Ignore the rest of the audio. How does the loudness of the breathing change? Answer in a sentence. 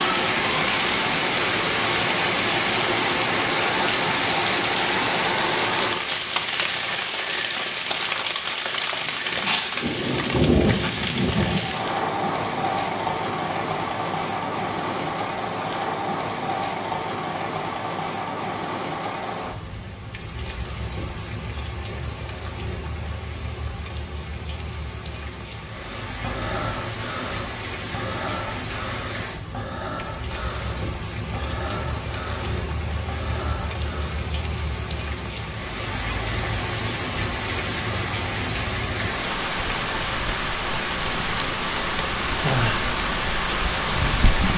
The loudness of the breathing stays about the same.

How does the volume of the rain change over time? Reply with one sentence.
The loudness of the rain goes down, then up.